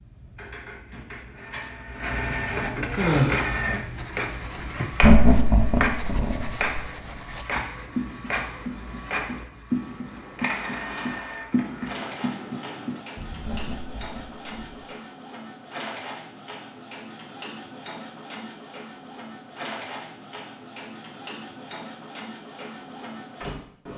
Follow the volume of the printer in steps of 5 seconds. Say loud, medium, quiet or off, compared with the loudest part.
loud, loud, medium, medium, medium.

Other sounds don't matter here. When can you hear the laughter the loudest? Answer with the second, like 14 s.
5 s.